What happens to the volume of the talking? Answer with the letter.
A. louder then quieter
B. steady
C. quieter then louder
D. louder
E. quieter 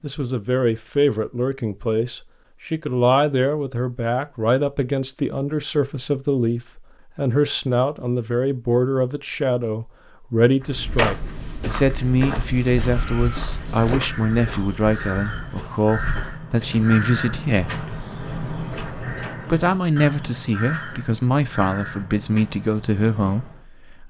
B.